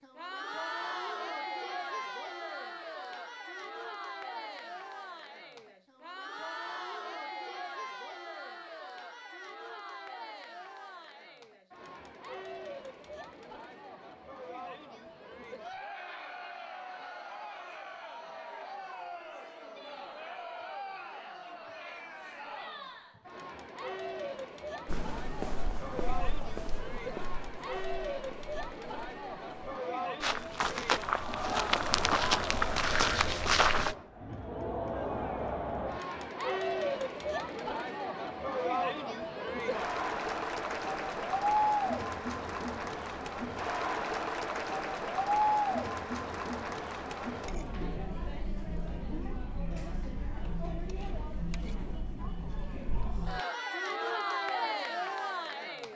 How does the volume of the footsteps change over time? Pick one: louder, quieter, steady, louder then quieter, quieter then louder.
quieter then louder.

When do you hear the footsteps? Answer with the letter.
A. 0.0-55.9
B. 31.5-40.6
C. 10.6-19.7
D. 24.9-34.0
D.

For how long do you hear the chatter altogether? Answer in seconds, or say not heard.
56 s.